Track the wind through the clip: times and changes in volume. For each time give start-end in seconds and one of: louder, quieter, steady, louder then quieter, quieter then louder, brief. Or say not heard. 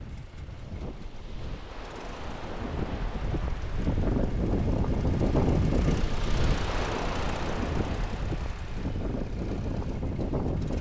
0.0-10.7 louder then quieter.